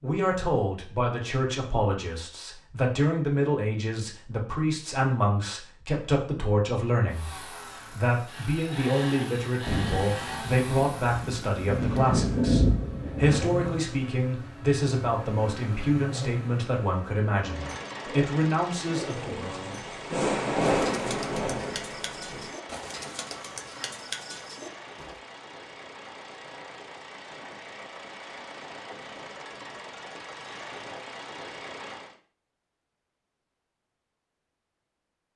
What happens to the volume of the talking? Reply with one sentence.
The volume of the talking stays about the same.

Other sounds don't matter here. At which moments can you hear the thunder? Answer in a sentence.
You can hear the thunder from 9.7 to 13.8 s and from 19.1 to 22.5 s.